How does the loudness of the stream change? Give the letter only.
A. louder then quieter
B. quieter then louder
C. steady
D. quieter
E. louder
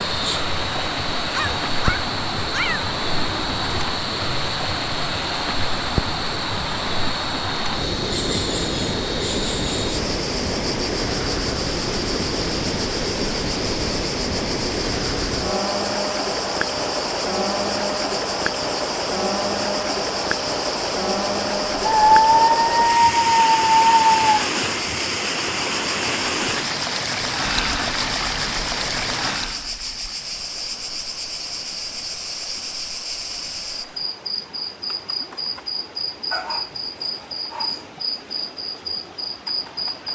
D.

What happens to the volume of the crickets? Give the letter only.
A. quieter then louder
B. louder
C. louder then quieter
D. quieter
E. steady
E.